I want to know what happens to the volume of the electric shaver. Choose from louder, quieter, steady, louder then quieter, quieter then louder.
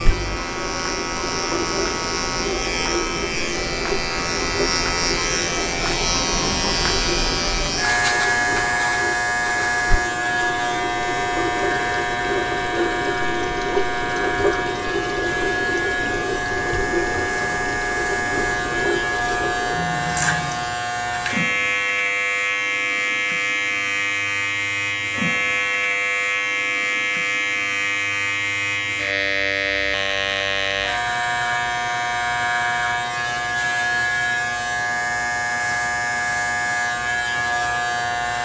steady.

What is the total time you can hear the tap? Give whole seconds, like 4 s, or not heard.
21 s.